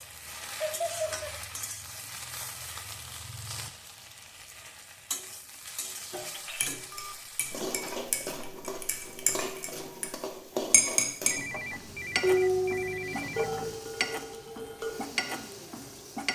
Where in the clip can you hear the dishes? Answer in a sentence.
The dishes can be heard from 6.5 to 10.1 s, from 10.7 to 11.3 s and from 12.2 to 15.1 s.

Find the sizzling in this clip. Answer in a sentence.
The sizzling can be heard from 0.0 to 16.2 s.